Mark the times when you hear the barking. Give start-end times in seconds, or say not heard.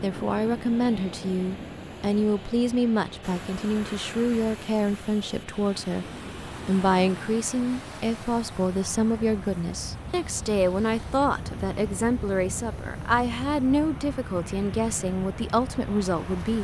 not heard.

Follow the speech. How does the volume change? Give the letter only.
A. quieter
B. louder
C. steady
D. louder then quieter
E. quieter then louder
C.